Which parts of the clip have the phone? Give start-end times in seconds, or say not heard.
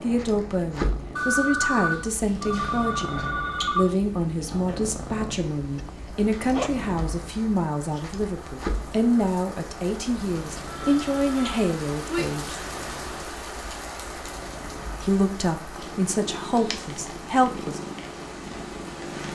1.1-3.9, 10.7-12.2.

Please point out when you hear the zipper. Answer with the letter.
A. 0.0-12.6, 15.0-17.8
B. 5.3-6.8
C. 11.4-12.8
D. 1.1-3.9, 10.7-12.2
B.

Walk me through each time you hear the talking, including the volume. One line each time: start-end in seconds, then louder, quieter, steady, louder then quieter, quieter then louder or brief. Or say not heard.
0.0-12.6 steady
15.0-17.8 brief.